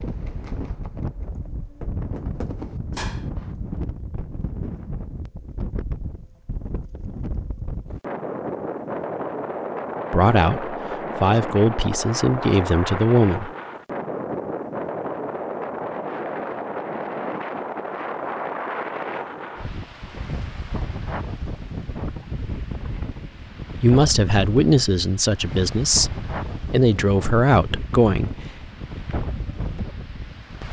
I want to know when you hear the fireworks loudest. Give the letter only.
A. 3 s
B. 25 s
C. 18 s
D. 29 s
A.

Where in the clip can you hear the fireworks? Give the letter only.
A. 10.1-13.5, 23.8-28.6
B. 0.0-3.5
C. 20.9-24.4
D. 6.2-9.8
B.